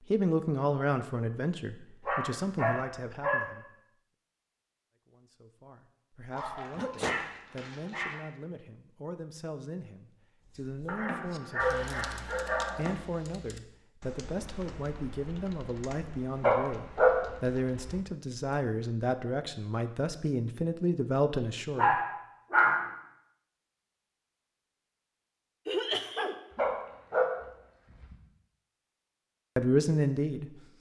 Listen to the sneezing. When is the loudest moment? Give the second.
26 s.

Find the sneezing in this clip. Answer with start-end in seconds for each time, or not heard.
6.8-7.2, 25.6-26.4.